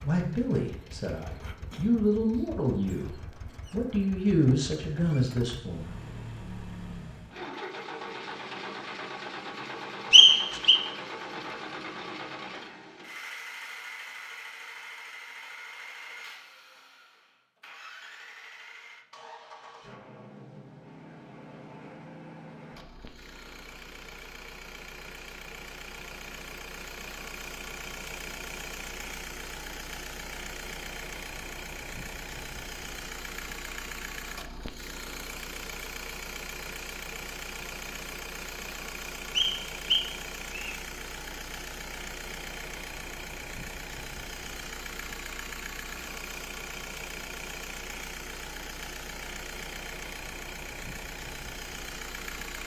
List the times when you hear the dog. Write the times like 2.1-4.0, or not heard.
not heard.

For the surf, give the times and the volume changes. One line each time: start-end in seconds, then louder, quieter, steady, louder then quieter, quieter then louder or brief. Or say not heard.
not heard.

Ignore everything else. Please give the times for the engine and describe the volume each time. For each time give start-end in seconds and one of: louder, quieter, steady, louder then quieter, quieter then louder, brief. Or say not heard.
0.0-52.6 steady.